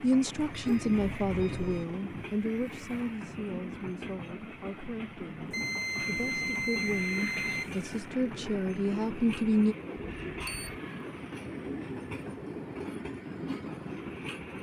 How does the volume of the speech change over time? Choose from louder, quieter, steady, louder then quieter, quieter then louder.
quieter then louder.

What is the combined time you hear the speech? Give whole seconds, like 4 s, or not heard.
10 s.